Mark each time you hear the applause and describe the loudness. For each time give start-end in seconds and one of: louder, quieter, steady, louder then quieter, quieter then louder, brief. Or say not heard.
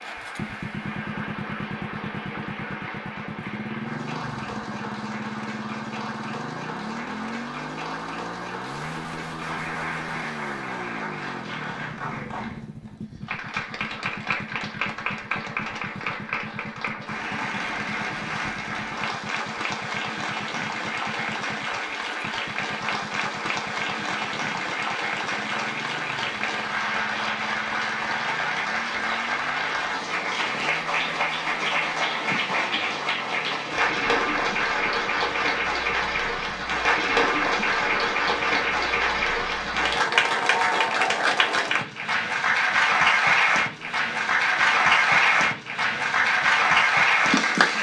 0.0-47.7 louder.